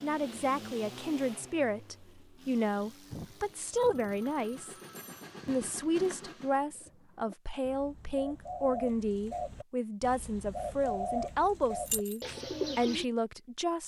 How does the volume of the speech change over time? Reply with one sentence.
The loudness of the speech stays about the same.